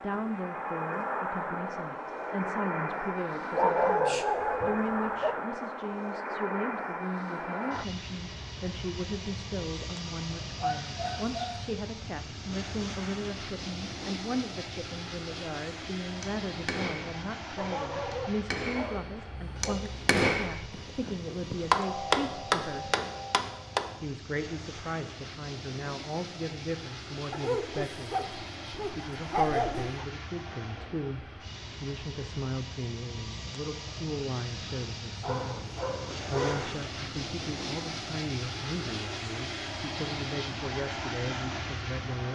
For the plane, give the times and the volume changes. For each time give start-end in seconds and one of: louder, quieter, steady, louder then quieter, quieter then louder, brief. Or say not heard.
0.0-42.3 quieter then louder.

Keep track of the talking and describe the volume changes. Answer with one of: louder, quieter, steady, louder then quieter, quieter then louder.
steady.